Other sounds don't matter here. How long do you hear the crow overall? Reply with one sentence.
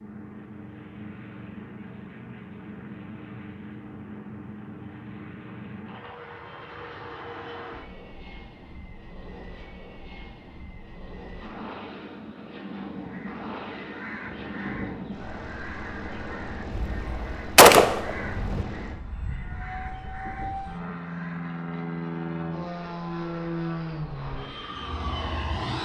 You can hear the crow for 9 seconds altogether.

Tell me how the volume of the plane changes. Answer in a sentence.
The volume of the plane goes up.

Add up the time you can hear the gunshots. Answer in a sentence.
The gunshots can be heard for 2 seconds in total.